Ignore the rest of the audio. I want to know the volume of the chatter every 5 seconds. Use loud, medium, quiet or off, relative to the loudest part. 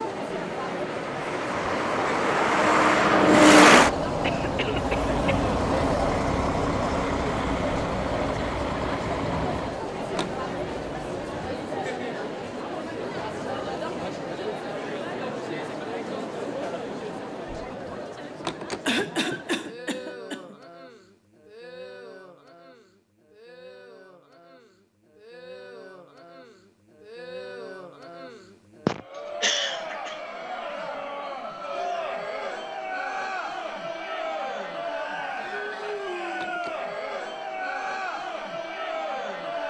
loud, loud, loud, loud, quiet, medium, loud, loud.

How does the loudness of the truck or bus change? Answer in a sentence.
The volume of the truck or bus goes up, then down.